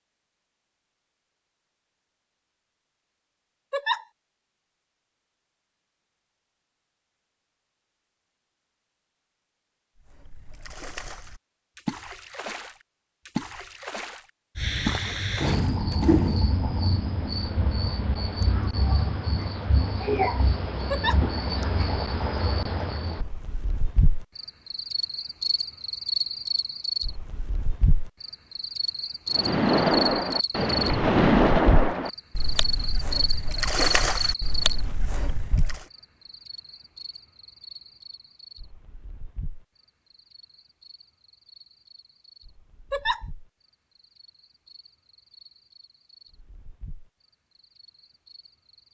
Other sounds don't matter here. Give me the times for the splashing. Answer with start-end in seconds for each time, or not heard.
9.9-16.6, 29.3-35.9.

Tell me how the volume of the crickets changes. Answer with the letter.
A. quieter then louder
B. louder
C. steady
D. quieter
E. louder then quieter
D.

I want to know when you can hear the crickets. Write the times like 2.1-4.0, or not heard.
14.6-48.9.